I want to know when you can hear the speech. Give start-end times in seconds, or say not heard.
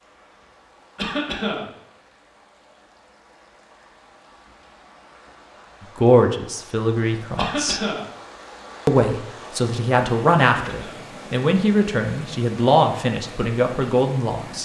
6.0-7.8, 8.8-14.6.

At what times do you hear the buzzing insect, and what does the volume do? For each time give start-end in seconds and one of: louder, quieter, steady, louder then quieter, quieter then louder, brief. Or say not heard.
not heard.